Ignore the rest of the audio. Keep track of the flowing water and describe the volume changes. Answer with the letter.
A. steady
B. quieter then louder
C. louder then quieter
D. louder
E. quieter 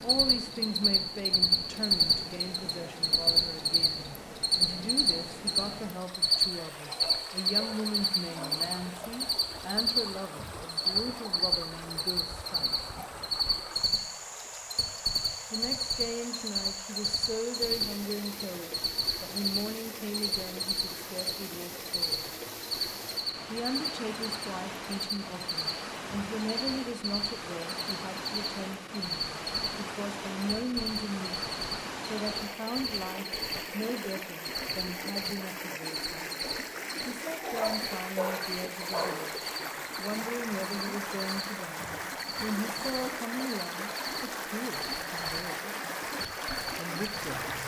D.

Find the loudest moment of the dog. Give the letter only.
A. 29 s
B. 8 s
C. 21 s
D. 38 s
D.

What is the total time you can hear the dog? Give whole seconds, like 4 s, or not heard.
4 s.